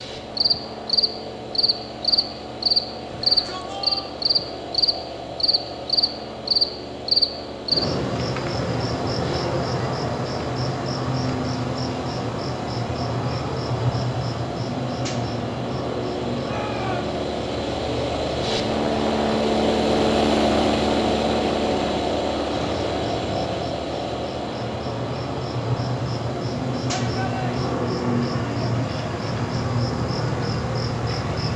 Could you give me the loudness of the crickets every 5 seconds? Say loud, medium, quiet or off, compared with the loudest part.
loud, loud, loud, medium, medium, loud, loud.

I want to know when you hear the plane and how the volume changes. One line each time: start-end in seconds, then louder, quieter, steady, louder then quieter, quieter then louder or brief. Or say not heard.
0.0-31.5 louder then quieter.